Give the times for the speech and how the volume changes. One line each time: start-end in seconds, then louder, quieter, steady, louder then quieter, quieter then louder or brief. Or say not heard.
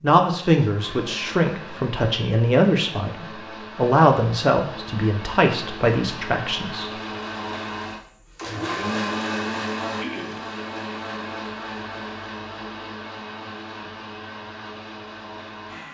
0.0-6.9 steady.